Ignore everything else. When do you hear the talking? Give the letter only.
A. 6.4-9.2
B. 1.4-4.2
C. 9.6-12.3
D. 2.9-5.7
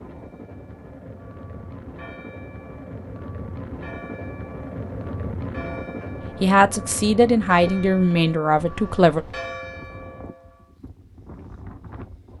A.